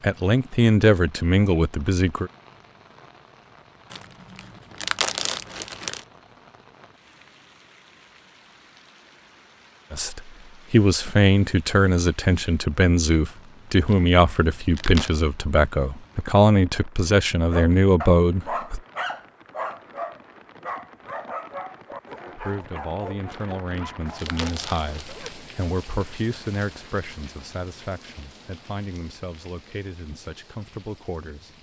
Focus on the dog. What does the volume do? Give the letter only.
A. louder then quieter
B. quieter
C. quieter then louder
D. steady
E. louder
B.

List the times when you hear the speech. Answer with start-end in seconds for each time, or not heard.
0.0-2.3, 9.9-18.8, 22.2-31.5.